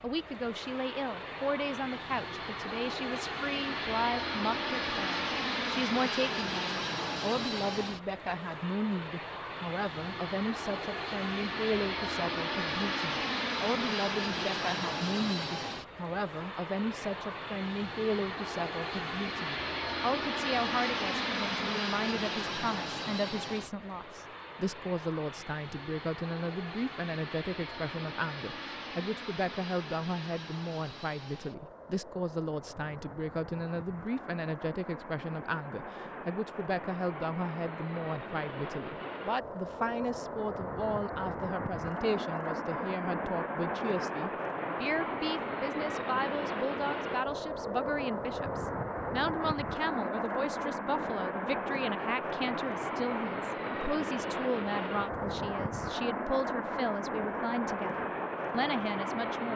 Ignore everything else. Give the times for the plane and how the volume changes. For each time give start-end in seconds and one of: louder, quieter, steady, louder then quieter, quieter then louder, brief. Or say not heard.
0.0-59.5 quieter then louder.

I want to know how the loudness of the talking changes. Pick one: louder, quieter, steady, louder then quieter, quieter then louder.
steady.